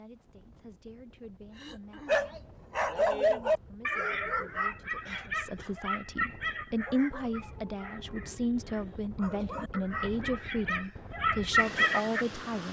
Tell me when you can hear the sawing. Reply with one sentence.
The sawing can't be heard in this clip.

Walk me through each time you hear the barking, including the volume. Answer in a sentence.
You can hear the barking from 2.0 to 12.2 s, getting quieter then louder.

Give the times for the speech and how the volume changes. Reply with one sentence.
You can hear the speech from 0.0 to 12.6 s, getting louder.